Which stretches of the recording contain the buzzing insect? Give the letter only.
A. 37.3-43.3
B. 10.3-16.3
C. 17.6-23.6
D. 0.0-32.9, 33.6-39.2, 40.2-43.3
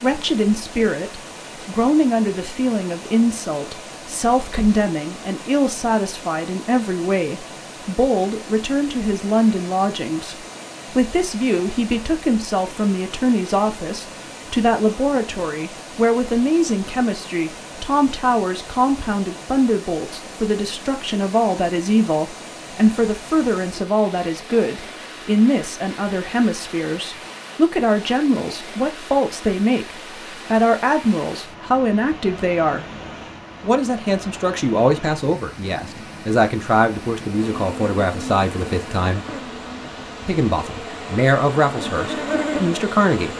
A.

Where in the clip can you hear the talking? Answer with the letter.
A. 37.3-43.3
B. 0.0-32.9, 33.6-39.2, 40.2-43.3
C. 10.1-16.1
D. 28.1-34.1
B.